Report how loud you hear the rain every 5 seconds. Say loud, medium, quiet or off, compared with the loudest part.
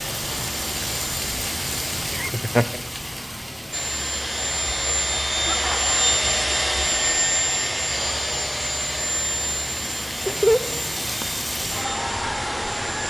loud, medium, loud.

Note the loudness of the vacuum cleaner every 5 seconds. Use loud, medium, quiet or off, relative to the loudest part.
medium, loud, medium.